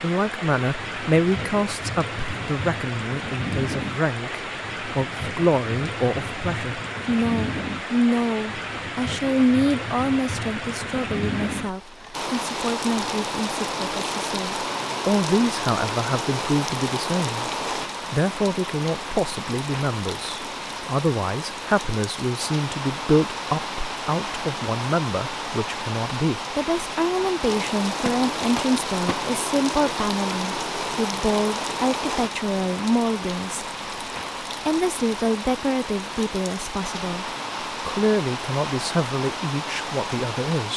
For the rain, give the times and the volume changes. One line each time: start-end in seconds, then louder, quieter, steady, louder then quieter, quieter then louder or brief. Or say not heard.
0.0-40.7 steady.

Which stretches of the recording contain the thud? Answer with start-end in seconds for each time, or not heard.
28.0-29.2.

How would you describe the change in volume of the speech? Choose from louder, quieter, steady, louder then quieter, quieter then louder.
steady.